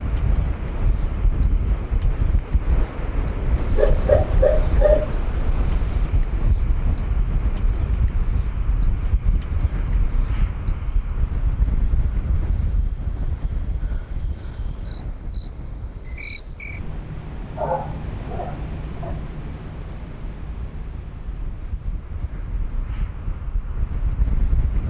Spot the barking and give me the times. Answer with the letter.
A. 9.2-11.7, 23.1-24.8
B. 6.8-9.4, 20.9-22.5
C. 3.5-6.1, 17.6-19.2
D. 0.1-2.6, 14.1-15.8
C.